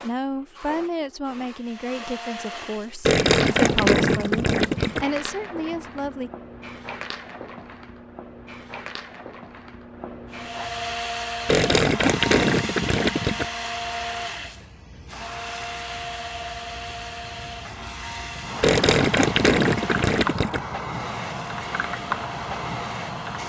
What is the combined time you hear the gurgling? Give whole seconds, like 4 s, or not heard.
6 s.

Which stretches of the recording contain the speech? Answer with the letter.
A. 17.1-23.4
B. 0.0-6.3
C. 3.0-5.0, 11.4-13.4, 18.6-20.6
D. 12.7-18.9
B.